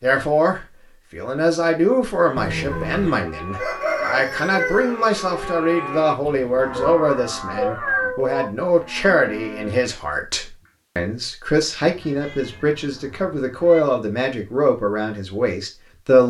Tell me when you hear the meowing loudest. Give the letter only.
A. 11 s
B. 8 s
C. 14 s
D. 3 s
B.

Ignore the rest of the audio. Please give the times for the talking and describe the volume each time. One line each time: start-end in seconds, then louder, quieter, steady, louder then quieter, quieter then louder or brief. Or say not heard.
0.0-16.2 steady.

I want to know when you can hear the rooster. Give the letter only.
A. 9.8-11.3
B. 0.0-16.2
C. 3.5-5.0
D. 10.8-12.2
C.